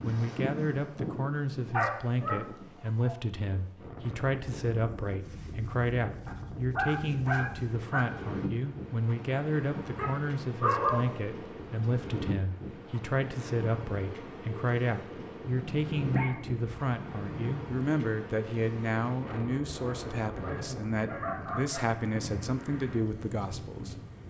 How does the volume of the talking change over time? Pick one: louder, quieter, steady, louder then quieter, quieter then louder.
steady.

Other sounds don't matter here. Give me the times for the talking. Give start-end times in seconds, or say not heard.
0.0-24.0.